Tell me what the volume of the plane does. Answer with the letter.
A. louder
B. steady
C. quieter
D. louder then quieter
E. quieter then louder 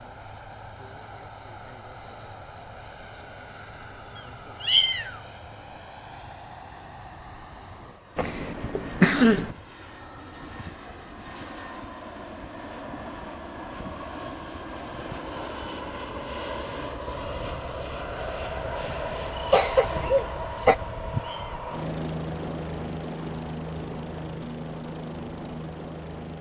A.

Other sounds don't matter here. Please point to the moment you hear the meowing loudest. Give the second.
5 s.